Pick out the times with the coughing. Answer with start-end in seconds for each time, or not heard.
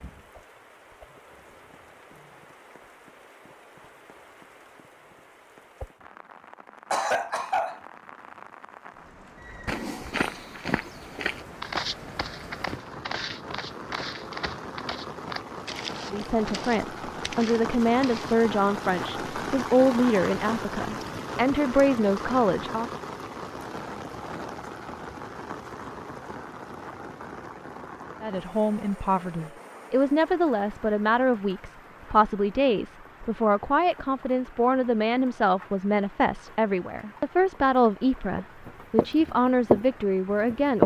6.9-7.8.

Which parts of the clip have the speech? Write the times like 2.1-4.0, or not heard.
16.1-22.9, 28.2-40.8.